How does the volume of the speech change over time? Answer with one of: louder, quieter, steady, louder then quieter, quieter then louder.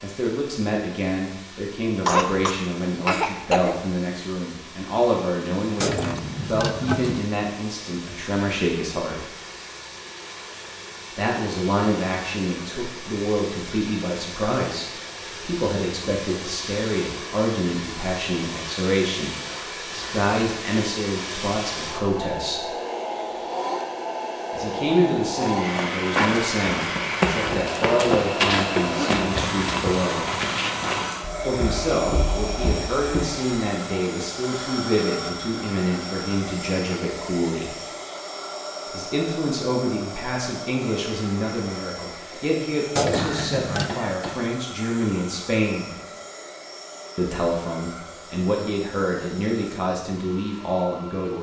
steady.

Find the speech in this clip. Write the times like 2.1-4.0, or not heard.
0.0-9.2, 11.2-22.7, 24.5-30.3, 31.4-37.8, 38.9-46.0, 47.1-51.3.